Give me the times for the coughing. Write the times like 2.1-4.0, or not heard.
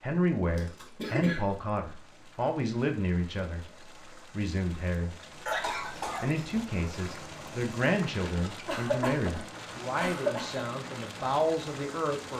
0.6-1.4, 5.5-6.5, 8.7-10.6.